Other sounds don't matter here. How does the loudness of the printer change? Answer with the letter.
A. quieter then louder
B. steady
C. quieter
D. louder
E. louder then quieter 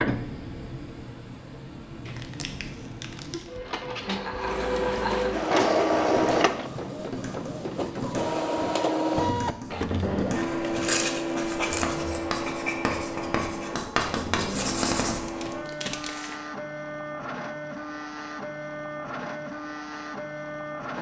E.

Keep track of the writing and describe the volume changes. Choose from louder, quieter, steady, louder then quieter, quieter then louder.
louder.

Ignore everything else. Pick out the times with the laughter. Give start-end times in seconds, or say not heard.
4.0-5.3.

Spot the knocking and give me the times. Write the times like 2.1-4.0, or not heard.
not heard.